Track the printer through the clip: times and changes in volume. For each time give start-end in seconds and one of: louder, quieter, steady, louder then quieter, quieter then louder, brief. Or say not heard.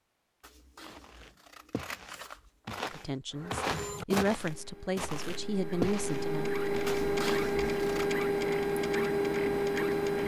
3.3-10.2 louder.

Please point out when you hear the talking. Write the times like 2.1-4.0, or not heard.
2.9-6.5.